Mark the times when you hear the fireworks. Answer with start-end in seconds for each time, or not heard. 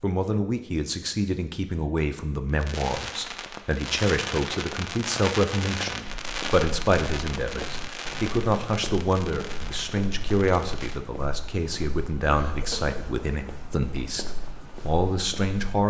2.5-11.0.